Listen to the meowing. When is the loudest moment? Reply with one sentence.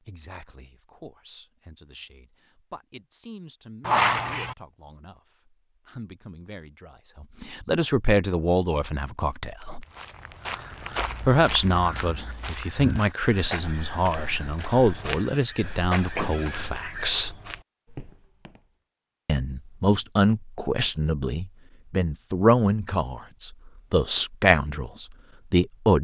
The loudest moment of the meowing is at 4 seconds.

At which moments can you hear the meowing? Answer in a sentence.
You can hear the meowing from 3.8 to 4.5 s and from 16.1 to 16.8 s.